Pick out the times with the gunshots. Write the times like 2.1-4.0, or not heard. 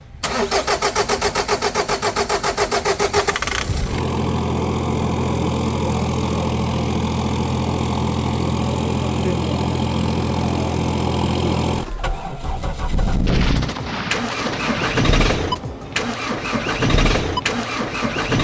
13.2-15.0.